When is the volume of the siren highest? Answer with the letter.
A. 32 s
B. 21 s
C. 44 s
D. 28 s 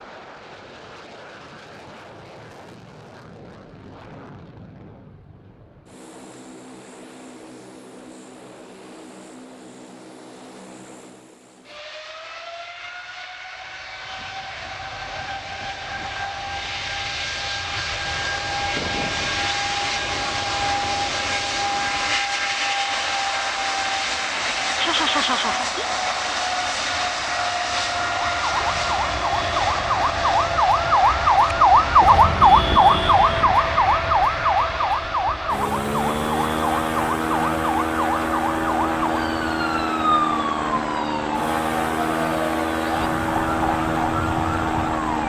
A.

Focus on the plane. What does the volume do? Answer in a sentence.
The loudness of the plane goes up.